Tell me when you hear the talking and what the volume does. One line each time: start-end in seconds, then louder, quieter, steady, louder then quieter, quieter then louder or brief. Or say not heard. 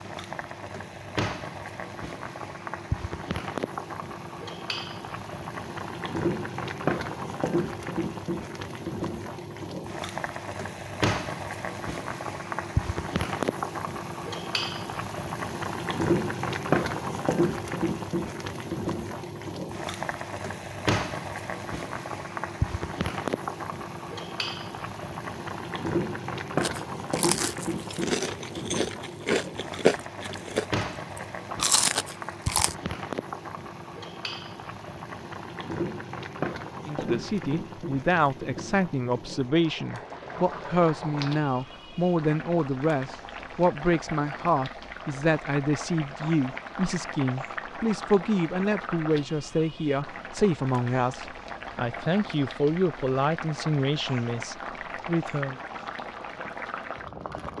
36.9-55.5 steady.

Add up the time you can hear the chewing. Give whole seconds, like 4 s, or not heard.
6 s.